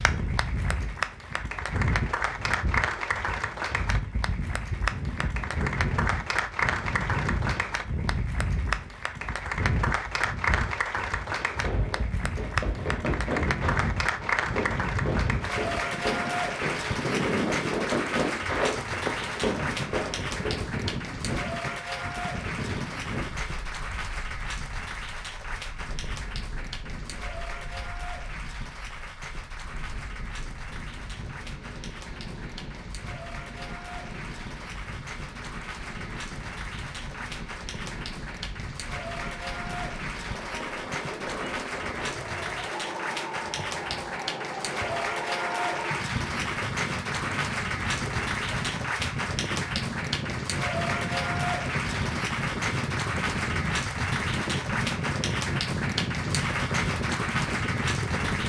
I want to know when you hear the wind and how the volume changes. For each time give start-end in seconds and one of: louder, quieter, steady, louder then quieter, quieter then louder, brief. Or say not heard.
0.0-58.4 quieter then louder.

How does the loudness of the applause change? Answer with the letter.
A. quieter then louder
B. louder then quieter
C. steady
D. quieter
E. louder
A.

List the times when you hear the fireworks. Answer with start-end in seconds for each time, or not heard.
11.3-20.6.